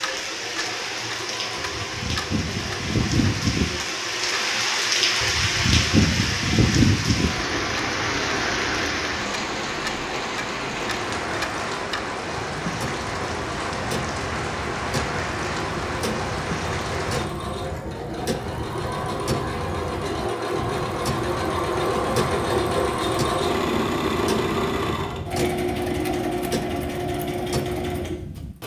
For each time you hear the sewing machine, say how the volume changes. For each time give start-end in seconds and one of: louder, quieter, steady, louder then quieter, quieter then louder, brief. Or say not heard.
0.0-28.6 louder.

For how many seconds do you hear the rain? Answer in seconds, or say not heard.
17 s.